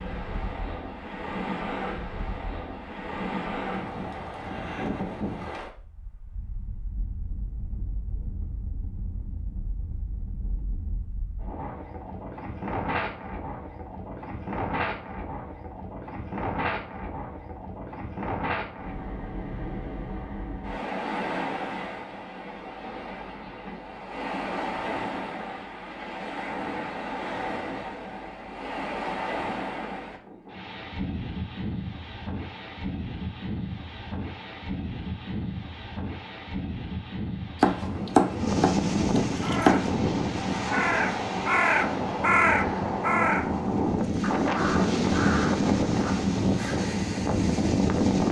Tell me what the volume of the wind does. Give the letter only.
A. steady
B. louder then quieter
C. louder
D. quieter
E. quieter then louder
C.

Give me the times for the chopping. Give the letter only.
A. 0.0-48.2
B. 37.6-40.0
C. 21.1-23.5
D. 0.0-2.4
B.